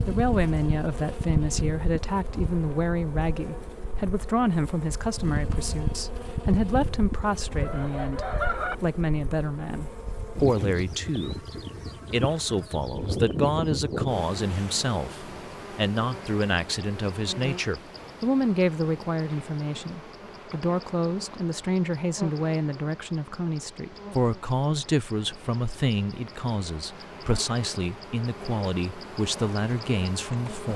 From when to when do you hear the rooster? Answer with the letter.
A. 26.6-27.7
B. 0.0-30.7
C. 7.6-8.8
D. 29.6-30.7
C.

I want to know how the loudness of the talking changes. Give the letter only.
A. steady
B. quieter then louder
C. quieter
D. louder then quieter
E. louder
A.